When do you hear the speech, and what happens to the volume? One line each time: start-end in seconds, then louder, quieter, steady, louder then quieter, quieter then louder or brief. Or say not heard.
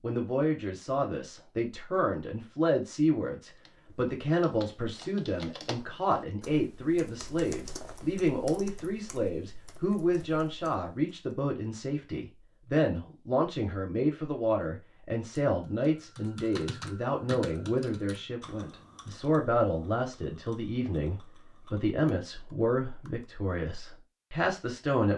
0.0-25.1 steady.